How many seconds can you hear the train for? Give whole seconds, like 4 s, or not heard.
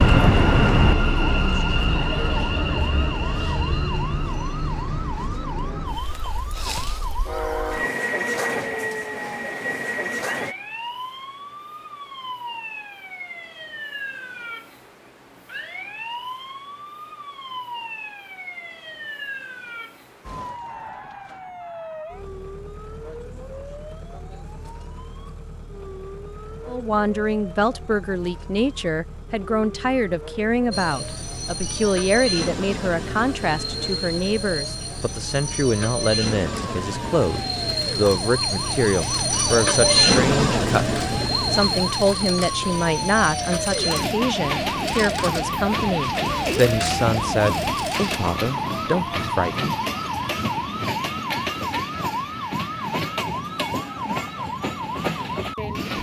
36 s.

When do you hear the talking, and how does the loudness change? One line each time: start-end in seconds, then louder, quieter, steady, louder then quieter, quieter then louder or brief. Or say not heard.
26.6-49.8 steady.